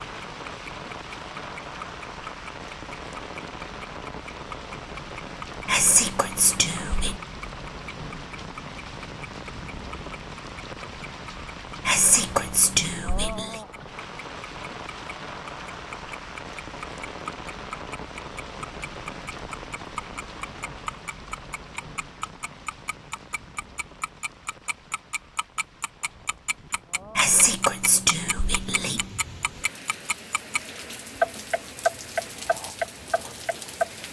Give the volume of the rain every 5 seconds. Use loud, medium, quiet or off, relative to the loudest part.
loud, loud, loud, loud, medium, medium, loud.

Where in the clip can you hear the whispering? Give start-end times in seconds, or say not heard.
5.7-7.2, 11.8-13.6, 27.1-29.1.